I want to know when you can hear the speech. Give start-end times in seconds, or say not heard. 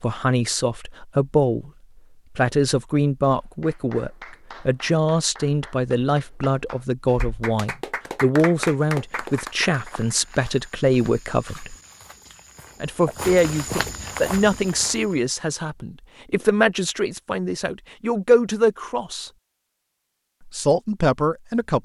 0.0-1.7, 2.4-11.8, 12.8-19.3, 20.4-21.8.